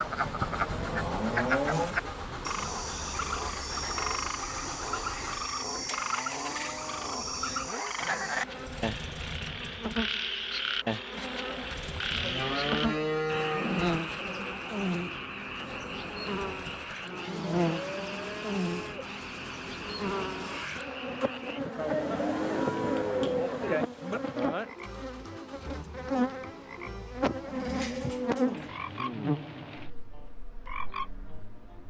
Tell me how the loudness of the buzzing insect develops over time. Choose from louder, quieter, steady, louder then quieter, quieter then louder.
louder.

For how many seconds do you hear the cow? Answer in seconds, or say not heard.
10 s.